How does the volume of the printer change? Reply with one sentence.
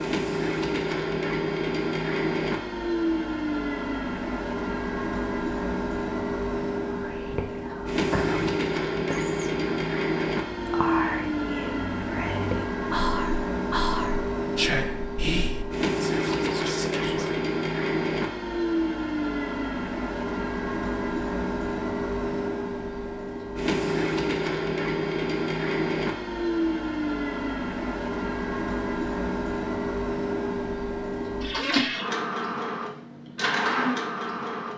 The volume of the printer stays about the same.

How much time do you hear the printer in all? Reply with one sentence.
You can hear the printer for 35 seconds altogether.